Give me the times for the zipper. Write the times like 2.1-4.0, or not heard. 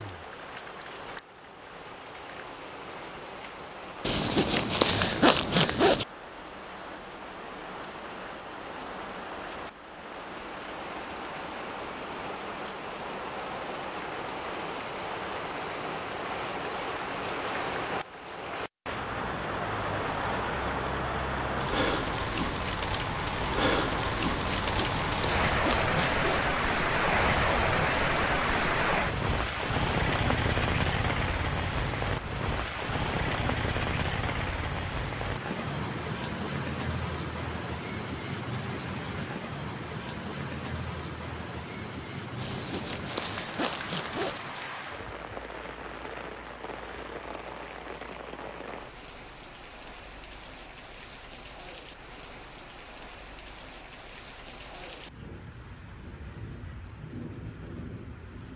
4.0-6.0, 24.4-26.5, 42.4-44.4.